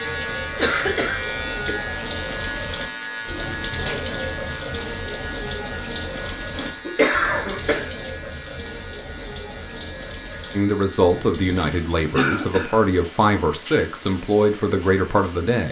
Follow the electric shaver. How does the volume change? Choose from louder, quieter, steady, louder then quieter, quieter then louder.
quieter.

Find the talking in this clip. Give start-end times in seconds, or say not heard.
10.6-15.6.